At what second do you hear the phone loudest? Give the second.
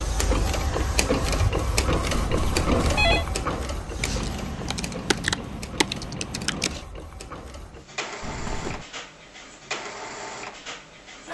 3 s.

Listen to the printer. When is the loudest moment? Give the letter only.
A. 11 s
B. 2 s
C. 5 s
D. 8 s
B.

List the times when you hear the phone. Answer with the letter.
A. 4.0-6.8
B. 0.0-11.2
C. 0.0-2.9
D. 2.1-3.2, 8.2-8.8
D.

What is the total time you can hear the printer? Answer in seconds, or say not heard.
11 s.